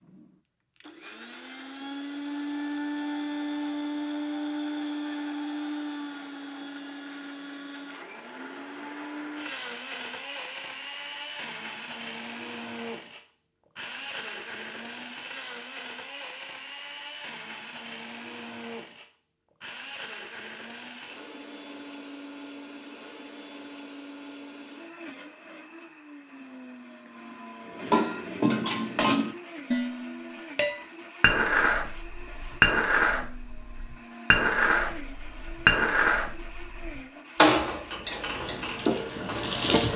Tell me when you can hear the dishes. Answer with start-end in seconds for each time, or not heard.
27.8-39.5.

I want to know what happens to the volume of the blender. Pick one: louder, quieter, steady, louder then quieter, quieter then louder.
quieter.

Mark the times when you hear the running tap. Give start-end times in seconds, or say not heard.
38.1-39.9.